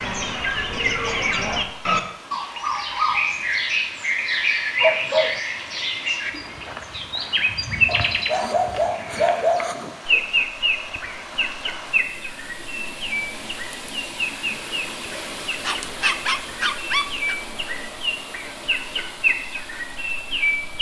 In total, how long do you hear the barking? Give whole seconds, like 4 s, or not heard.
5 s.